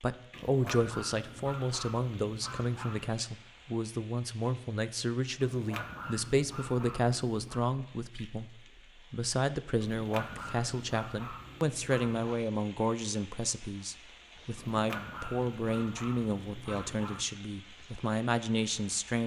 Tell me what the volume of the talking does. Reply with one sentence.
The loudness of the talking stays about the same.